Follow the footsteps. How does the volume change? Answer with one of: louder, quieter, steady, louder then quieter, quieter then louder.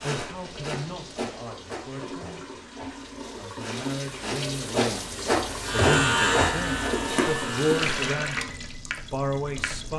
quieter then louder.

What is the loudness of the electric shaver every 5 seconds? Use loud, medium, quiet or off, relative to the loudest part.
off, loud.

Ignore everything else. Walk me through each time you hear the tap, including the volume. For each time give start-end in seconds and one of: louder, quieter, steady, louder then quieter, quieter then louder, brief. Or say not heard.
0.1-9.9 louder.